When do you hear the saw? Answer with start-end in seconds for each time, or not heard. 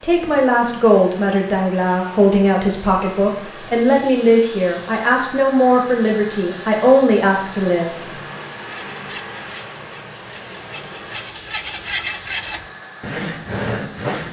8.7-14.2.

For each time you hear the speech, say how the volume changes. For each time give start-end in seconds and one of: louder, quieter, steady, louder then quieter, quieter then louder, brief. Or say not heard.
0.0-8.1 steady.